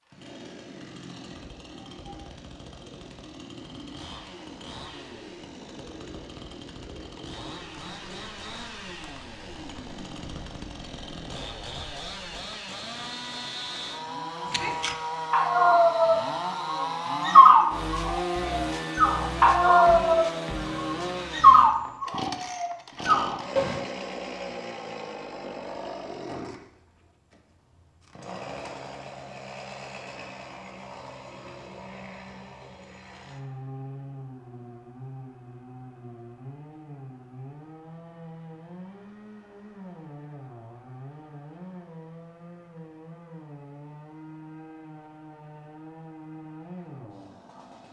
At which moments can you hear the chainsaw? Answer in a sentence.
You can hear the chainsaw from 0.0 to 47.8 s.